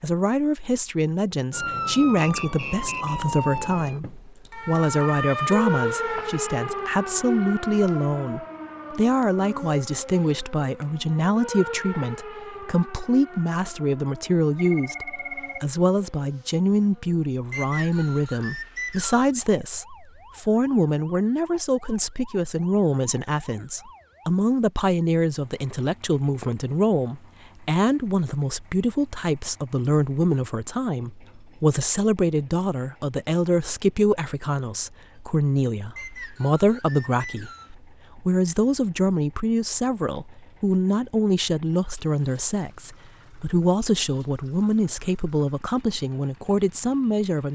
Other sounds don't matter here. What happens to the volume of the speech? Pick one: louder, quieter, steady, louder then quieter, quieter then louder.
steady.